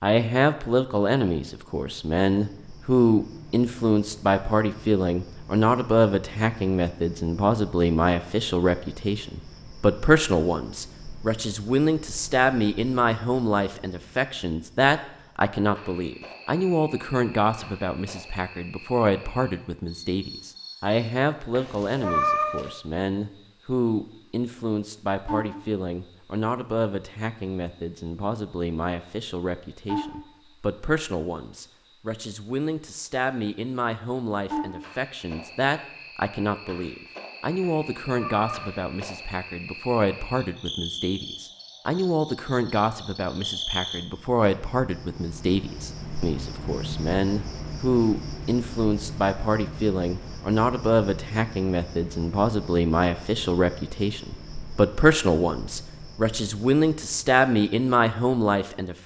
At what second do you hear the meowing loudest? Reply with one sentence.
The loudest moment of the meowing is at 22 seconds.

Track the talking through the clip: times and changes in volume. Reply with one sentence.
The talking can be heard from 0.0 to 59.0 s, getting quieter then louder.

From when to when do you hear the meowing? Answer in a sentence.
The meowing can be heard from 21.6 to 22.7 s and from 37.6 to 38.8 s.